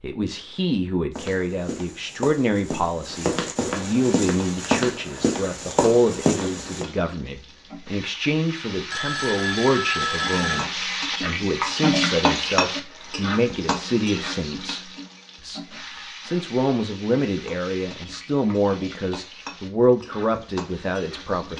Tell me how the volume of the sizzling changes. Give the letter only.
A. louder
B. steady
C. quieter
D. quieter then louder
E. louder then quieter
E.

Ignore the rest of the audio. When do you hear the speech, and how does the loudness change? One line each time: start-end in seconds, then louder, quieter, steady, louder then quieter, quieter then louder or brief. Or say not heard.
0.0-21.5 steady.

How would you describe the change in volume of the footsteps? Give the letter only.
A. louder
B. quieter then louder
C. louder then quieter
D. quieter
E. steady
A.